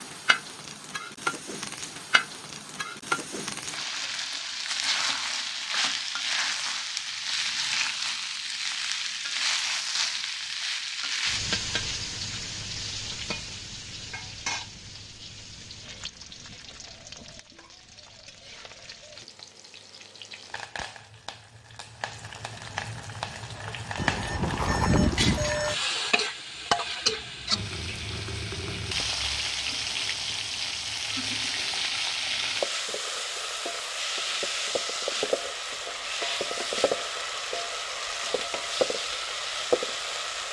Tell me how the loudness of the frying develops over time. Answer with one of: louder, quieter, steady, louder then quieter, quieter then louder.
quieter then louder.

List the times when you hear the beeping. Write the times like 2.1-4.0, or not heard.
23.9-25.8.